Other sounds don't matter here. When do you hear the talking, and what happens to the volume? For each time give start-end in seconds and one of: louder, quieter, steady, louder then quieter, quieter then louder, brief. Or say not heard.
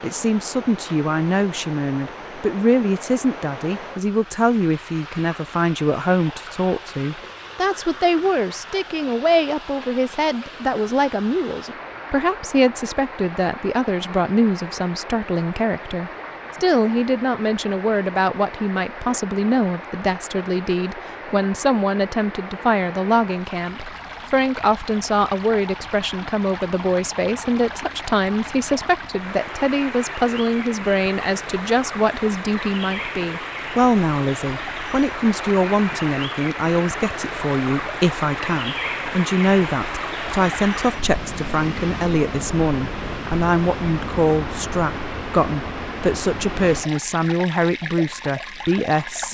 0.0-49.2 steady.